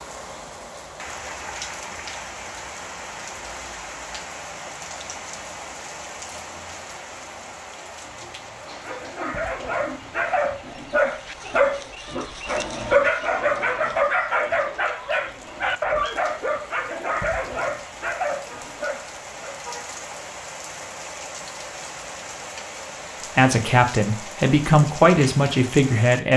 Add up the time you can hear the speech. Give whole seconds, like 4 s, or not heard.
3 s.